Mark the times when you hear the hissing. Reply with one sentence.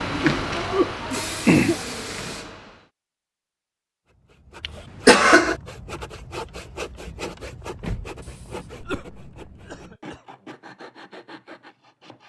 The hissing can be heard from 0.0 to 2.9 s.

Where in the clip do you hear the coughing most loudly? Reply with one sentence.
The loudest moment of the coughing is at 5 seconds.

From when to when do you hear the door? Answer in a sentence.
You can hear the door from 7.0 to 8.2 s.